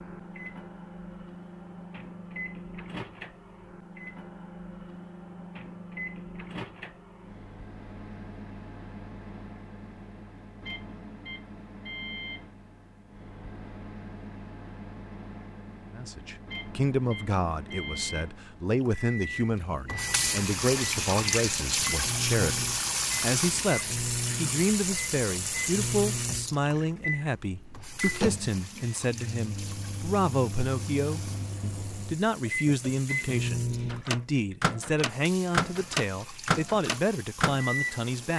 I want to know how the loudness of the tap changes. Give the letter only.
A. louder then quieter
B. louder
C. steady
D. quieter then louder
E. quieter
E.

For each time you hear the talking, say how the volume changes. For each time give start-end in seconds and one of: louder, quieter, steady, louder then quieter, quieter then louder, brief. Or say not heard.
15.9-38.3 steady.